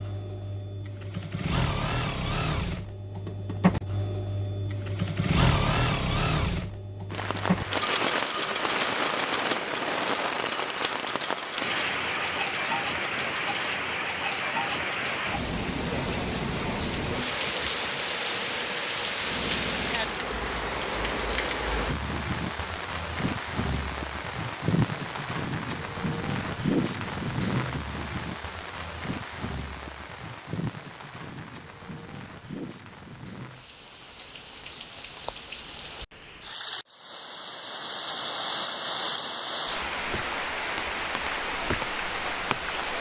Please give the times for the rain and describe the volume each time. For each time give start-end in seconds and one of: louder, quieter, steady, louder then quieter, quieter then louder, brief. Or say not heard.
7.1-42.9 quieter then louder.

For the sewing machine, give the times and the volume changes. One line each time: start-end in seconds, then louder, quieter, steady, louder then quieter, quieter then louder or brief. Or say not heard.
0.0-20.1 quieter.